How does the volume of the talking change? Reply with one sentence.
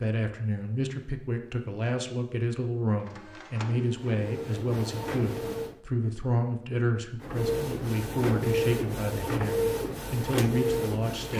The volume of the talking stays about the same.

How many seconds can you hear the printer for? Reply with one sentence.
The printer can be heard for 7 seconds in total.